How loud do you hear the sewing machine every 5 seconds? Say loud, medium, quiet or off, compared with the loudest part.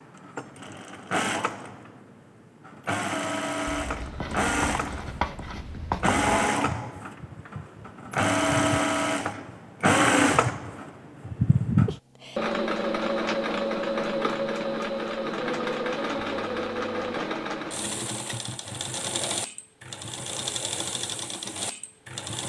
medium, loud, loud, medium, medium.